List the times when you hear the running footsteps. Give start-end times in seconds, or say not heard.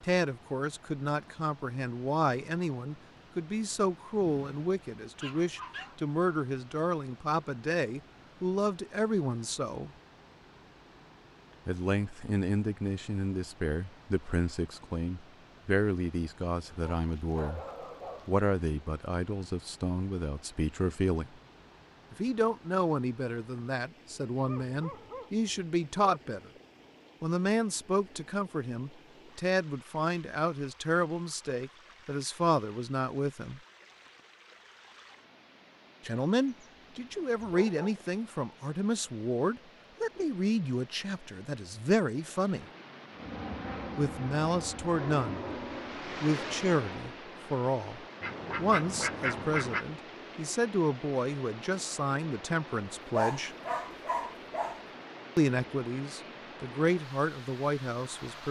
not heard.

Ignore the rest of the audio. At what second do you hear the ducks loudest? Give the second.
49 s.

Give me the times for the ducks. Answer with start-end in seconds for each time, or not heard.
48.2-49.9.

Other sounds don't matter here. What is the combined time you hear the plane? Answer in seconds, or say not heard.
4 s.